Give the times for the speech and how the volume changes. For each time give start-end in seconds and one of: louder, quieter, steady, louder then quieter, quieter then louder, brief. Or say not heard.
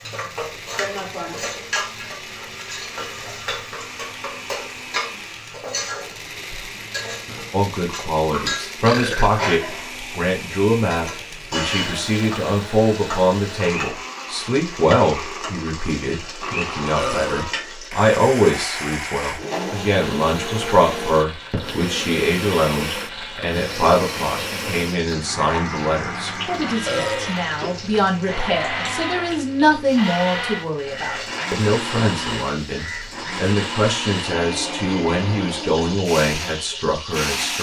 7.5-37.5 steady.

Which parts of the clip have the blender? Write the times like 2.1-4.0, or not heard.
0.0-37.5.